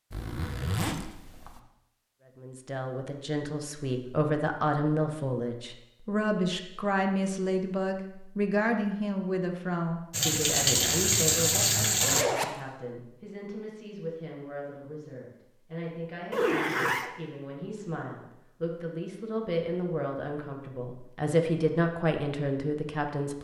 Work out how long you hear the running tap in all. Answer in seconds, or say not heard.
2 s.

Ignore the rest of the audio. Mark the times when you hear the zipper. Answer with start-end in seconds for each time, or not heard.
0.1-1.6, 11.8-12.5, 16.3-17.1.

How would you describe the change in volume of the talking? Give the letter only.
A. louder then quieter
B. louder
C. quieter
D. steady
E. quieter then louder
E.